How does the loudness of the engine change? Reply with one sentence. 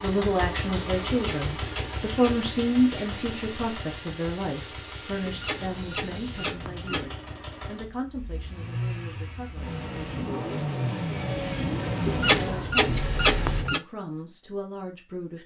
The loudness of the engine goes down, then up.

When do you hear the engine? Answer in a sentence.
You can hear the engine from 0.0 to 13.7 s.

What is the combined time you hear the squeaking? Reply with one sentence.
You can hear the squeaking for 5 seconds altogether.